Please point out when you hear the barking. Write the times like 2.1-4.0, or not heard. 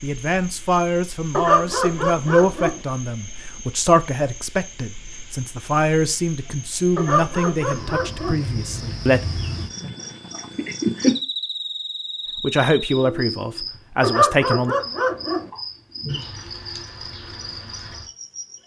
1.3-2.8, 7.0-8.4, 14.0-15.4.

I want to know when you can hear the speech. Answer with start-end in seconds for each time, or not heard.
0.0-9.2, 12.3-14.8.